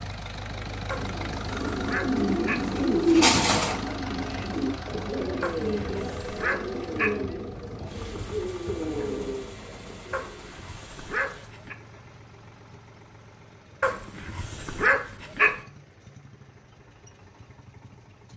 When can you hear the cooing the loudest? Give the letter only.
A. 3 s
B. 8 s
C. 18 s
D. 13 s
A.